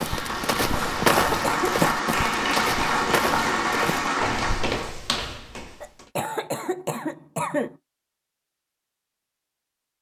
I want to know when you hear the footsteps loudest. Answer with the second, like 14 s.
1 s.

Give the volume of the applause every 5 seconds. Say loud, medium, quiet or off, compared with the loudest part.
loud, off.